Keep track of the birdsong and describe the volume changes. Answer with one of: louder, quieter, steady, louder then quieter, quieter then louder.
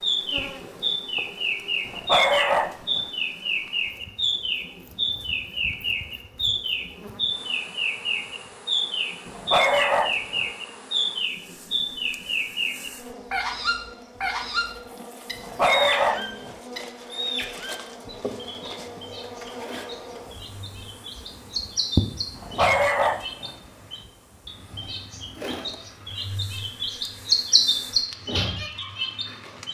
quieter then louder.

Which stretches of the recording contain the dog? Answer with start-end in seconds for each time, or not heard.
1.9-3.0, 9.2-10.4, 15.3-16.6, 22.4-23.6.